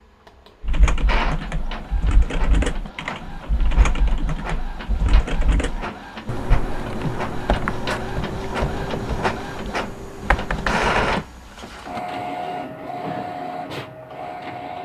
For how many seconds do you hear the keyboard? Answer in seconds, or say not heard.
11 s.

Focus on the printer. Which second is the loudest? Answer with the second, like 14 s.
11 s.